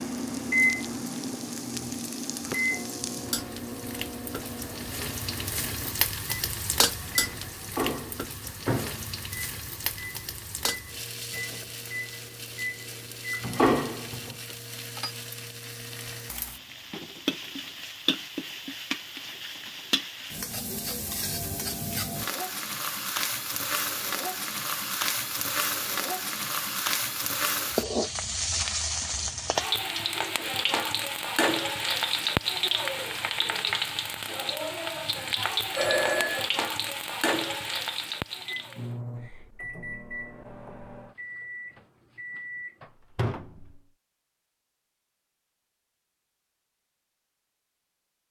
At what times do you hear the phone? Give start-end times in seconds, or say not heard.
35.1-36.5.